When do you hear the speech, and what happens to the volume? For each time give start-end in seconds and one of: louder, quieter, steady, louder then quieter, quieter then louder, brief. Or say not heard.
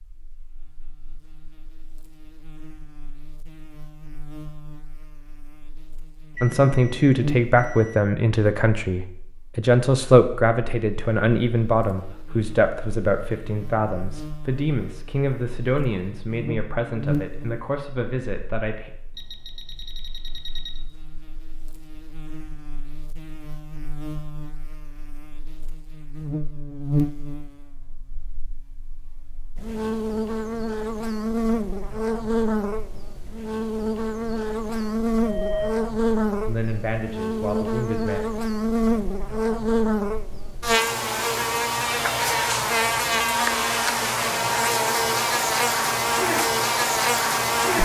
6.4-18.9 quieter
36.5-38.2 brief.